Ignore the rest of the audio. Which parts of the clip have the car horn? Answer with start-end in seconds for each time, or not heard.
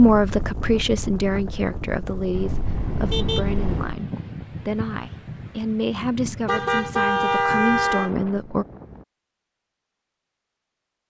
2.3-4.0, 6.5-8.1.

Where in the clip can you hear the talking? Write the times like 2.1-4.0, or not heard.
0.0-8.7.